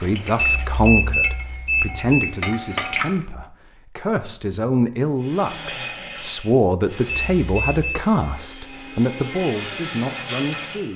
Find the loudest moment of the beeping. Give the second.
1 s.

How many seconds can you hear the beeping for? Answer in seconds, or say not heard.
3 s.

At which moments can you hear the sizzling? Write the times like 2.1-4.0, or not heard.
0.0-3.1.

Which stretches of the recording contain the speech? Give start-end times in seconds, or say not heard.
0.0-10.9.